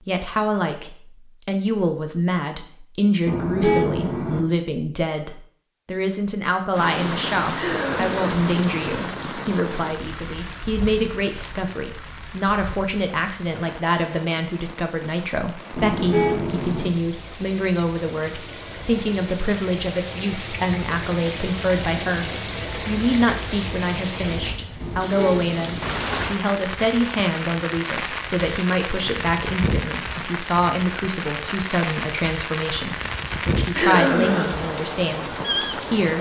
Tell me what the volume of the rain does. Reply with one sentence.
The loudness of the rain goes down, then up.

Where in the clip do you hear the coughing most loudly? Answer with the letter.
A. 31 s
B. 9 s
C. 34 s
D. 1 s
C.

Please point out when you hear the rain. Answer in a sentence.
The rain can be heard from 6.7 to 36.1 s.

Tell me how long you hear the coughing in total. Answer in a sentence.
The coughing can be heard for 2 seconds in total.